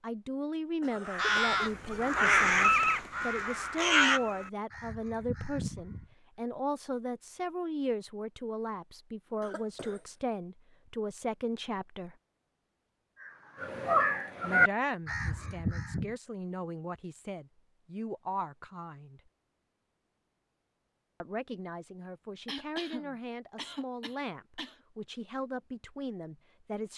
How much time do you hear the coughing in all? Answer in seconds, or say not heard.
4 s.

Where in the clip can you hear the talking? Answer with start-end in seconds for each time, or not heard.
0.0-12.2, 14.4-19.2, 21.2-26.9.